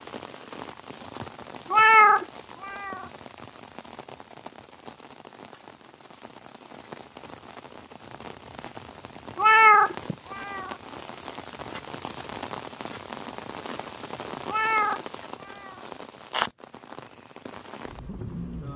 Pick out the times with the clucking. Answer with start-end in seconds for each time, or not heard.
not heard.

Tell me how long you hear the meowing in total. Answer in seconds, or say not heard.
4 s.